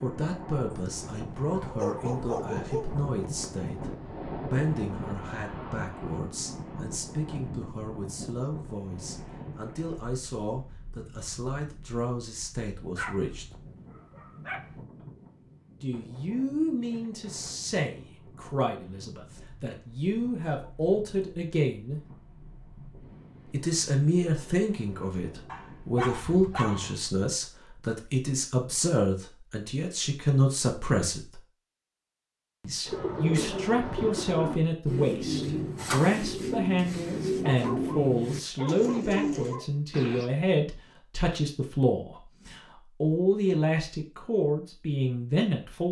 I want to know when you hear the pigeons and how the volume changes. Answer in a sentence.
The pigeons can be heard from 32.9 to 40.3 s, at a steady volume.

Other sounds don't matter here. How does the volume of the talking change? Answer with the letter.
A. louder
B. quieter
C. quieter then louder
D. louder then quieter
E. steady
A.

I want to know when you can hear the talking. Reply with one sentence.
The talking can be heard from 0.0 to 13.4 s, from 15.8 to 22.0 s, from 23.5 to 31.4 s and from 32.6 to 45.8 s.